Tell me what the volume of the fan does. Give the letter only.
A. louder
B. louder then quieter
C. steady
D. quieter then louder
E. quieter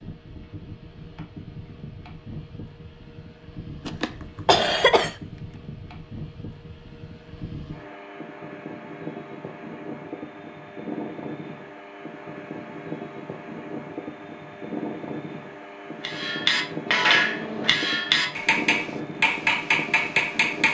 A.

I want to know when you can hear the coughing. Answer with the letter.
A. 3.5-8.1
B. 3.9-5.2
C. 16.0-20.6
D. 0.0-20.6
B.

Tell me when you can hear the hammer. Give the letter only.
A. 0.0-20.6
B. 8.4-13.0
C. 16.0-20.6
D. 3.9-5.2
C.